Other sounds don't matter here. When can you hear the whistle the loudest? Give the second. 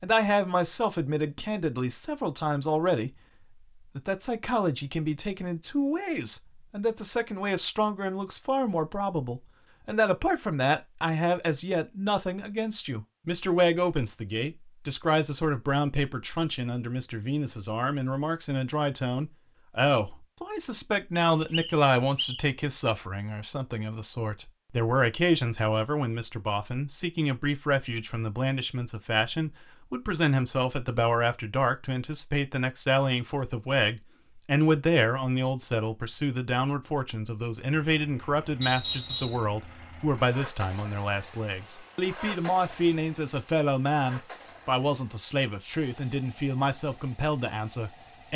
39 s.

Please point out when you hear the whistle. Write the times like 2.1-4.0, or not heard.
21.1-22.4, 38.6-39.5.